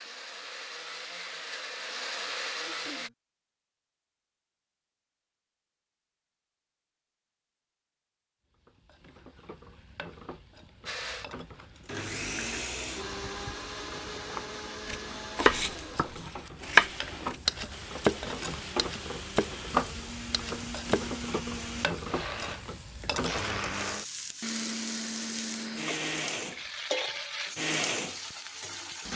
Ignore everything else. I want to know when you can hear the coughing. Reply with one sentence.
The coughing can be heard from 2.5 to 3.1 s.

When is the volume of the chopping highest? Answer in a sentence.
The volume of the chopping peaks at 17 seconds.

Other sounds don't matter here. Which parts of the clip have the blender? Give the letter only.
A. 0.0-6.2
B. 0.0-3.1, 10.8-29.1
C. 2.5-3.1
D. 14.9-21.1
B.